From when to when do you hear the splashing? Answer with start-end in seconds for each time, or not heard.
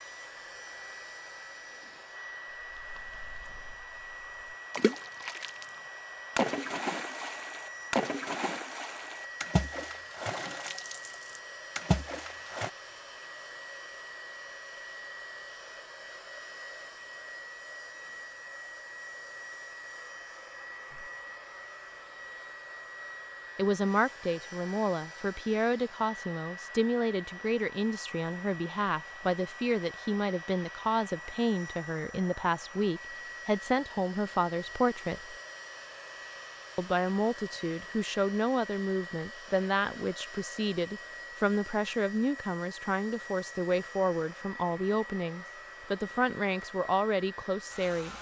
2.8-3.9, 4.7-5.7, 6.3-12.7.